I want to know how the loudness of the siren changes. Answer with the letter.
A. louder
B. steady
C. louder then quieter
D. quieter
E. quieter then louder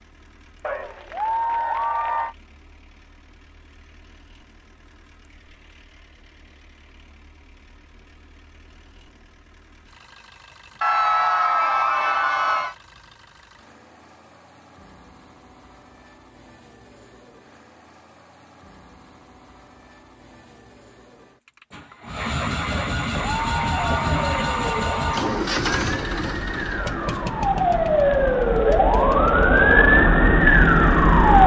A.